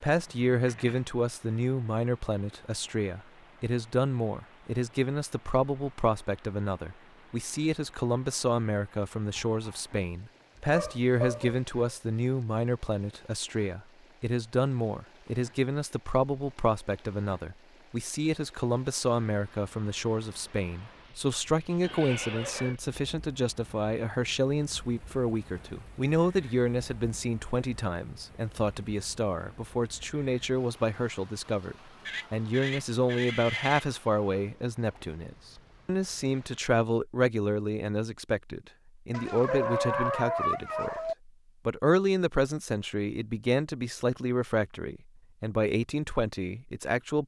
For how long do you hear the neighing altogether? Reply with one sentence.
You can hear the neighing for 4 seconds altogether.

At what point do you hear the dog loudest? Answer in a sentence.
The loudest moment of the dog is at 40 seconds.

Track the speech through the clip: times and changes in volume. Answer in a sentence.
You can hear the speech from 0.0 to 47.2 s, at a steady volume.